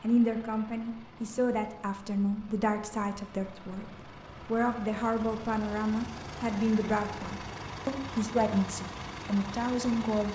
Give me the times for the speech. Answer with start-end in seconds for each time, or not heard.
0.0-10.3.